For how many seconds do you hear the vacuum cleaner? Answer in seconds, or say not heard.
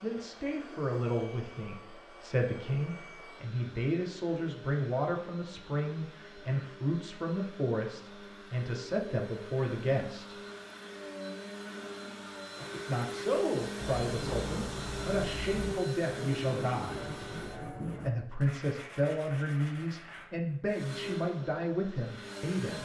20 s.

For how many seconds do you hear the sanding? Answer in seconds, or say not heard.
8 s.